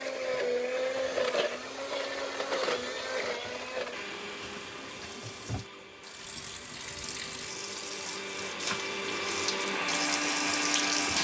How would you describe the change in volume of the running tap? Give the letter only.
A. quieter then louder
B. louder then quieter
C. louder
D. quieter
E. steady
C.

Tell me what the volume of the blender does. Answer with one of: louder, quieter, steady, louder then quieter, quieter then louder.
quieter then louder.